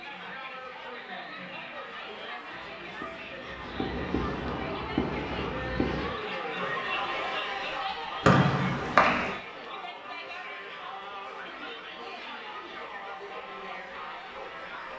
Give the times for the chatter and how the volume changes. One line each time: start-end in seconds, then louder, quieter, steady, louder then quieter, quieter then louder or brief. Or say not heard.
0.0-14.9 louder then quieter.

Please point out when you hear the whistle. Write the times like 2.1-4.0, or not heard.
8.2-9.3.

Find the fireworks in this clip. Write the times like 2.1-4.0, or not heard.
2.5-6.2.